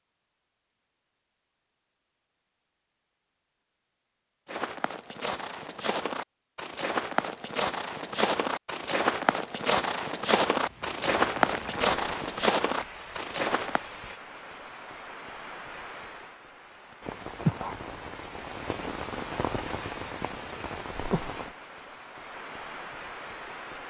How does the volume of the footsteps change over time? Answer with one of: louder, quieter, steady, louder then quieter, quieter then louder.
louder.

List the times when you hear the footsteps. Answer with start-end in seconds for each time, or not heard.
4.5-13.8.